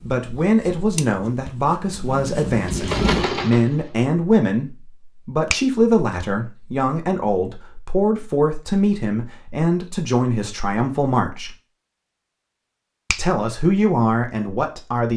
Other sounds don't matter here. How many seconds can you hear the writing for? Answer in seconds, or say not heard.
3 s.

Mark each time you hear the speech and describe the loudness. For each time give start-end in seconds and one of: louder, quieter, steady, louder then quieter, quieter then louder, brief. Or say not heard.
0.0-11.6 steady
13.2-15.1 brief.